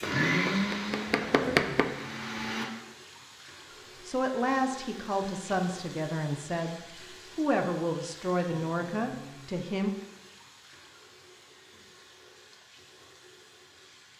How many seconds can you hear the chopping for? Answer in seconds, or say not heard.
2 s.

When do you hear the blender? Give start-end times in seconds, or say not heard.
0.0-2.6.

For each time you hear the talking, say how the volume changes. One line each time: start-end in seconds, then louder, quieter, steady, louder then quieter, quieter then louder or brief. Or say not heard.
4.0-9.9 steady.